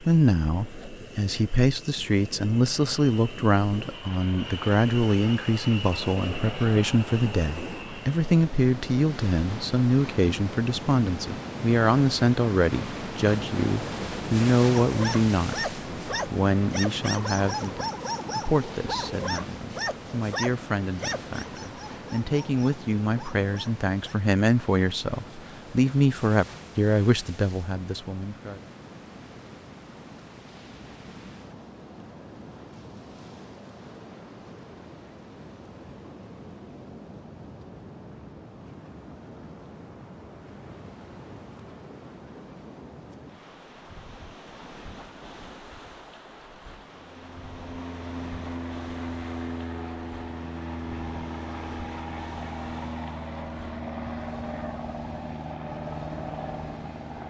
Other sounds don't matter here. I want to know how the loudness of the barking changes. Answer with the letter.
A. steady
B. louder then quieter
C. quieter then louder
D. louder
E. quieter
E.